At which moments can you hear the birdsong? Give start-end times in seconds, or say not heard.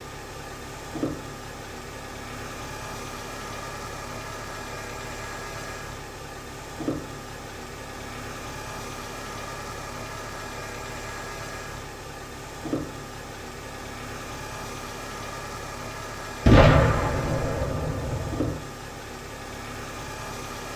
not heard.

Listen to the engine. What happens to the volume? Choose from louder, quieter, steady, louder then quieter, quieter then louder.
steady.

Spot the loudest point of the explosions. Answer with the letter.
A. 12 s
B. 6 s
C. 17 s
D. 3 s
C.